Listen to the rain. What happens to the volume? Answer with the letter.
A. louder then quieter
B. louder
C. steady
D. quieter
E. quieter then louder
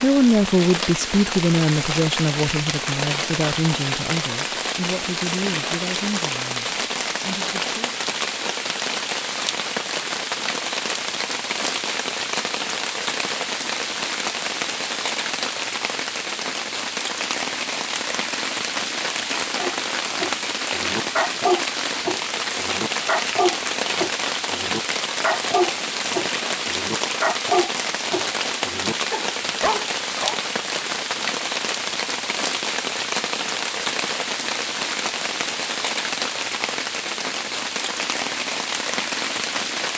C.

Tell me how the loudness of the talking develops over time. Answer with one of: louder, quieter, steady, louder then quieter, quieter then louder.
quieter.